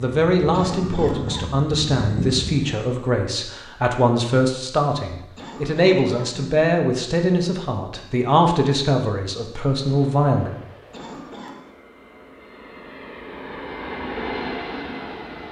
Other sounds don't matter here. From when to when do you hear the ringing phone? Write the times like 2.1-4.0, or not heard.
not heard.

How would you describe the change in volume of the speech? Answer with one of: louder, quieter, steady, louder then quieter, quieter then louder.
steady.